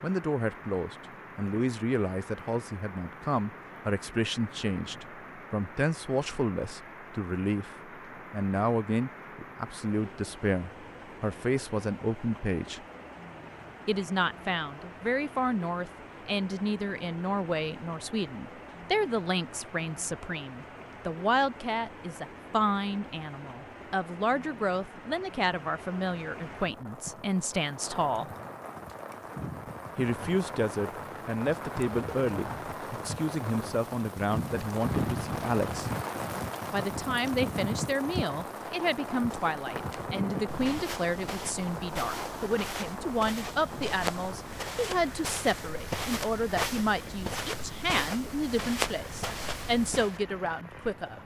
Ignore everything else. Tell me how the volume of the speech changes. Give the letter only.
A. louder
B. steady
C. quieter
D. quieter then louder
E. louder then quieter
B.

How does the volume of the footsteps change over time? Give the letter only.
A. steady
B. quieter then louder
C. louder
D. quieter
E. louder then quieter
C.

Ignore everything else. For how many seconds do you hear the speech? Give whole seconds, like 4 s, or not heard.
47 s.